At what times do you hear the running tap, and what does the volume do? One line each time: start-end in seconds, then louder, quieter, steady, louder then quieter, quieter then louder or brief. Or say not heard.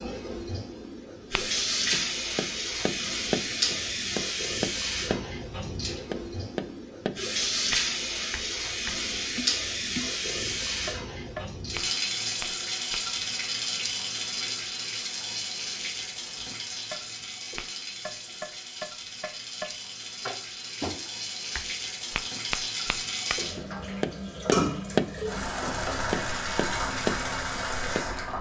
0.0-28.3 quieter then louder.